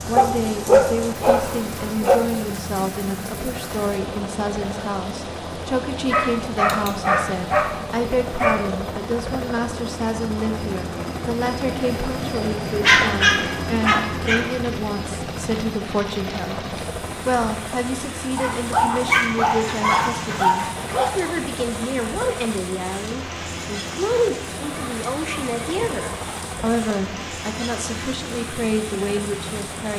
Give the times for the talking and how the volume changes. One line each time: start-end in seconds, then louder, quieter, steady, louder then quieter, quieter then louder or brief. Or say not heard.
0.1-29.9 steady.